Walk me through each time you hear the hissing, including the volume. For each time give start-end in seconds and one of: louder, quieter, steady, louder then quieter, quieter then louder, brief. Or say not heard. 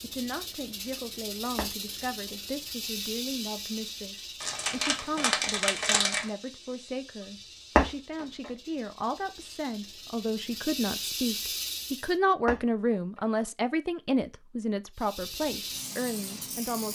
0.0-12.2 quieter then louder
14.9-16.8 brief.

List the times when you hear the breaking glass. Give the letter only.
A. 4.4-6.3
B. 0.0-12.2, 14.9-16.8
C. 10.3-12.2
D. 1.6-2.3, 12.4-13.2
D.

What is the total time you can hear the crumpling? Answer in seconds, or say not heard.
2 s.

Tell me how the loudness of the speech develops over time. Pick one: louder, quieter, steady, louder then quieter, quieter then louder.
louder.